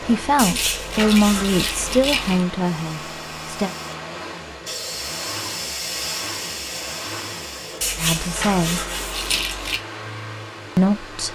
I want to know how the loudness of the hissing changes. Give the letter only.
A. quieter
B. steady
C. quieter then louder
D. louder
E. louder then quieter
E.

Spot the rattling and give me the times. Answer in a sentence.
You can hear the rattling from 0.4 to 2.5 s and from 9.1 to 9.8 s.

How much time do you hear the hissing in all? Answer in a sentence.
You can hear the hissing for 6 seconds altogether.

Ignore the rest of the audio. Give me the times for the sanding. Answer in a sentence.
You can hear the sanding from 0.3 to 2.5 s and from 7.8 to 9.8 s.